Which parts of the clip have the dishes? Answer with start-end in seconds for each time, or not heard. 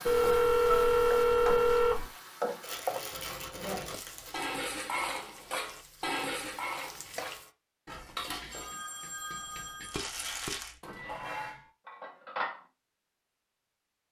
3.1-12.7.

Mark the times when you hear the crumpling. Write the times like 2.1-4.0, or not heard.
2.6-4.3, 9.8-10.8.